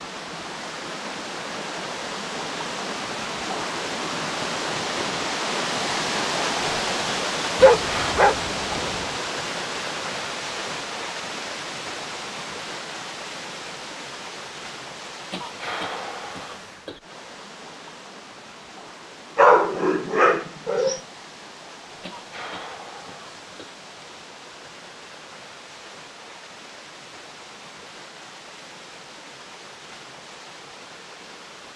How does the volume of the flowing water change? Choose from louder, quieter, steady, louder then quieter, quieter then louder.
quieter.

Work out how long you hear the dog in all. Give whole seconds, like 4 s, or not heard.
3 s.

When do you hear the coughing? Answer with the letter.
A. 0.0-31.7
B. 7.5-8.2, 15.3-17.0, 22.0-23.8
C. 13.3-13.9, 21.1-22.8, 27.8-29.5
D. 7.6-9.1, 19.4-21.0
B.